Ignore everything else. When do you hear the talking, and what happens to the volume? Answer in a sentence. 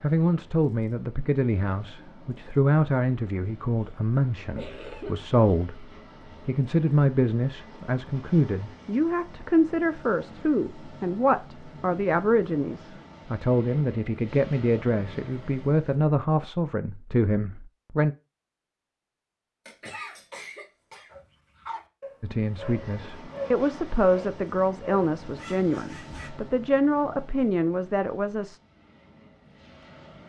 You can hear the talking from 0.0 to 18.1 s, at a steady volume; and from 22.2 to 28.6 s, at a steady volume.